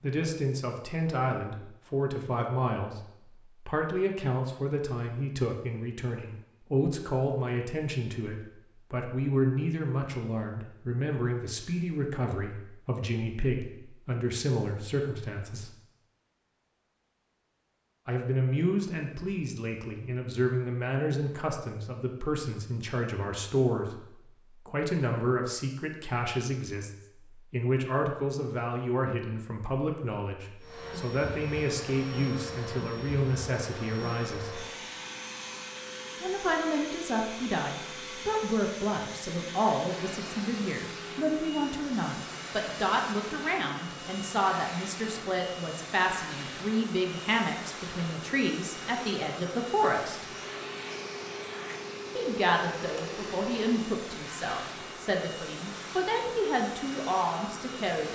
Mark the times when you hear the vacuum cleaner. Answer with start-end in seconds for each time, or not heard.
30.6-58.0.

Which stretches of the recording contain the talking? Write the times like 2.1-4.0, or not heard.
0.0-15.7, 18.1-34.6, 36.2-50.2, 52.1-58.0.